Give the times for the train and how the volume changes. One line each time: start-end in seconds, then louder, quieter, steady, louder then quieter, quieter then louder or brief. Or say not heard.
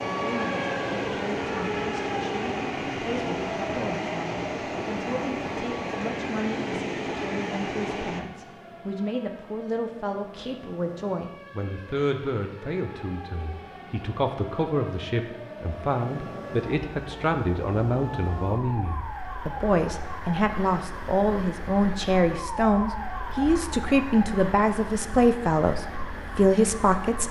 0.0-8.2 steady.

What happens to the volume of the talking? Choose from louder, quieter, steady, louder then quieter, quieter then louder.
louder.